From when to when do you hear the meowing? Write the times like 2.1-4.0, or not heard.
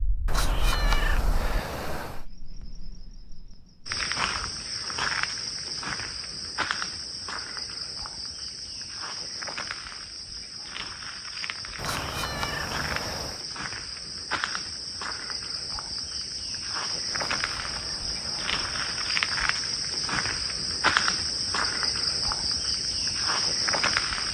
0.2-2.2, 11.8-13.4, 17.1-19.1.